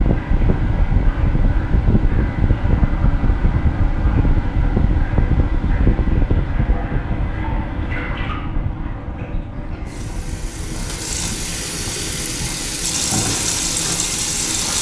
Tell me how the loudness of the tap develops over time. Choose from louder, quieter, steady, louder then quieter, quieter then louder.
louder.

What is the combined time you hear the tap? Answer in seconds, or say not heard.
15 s.